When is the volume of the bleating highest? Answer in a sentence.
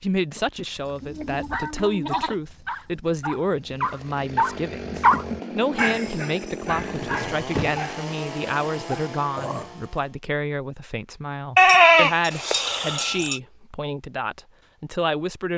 The volume of the bleating peaks at 12 seconds.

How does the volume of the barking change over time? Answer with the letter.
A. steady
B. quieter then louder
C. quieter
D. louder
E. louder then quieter
E.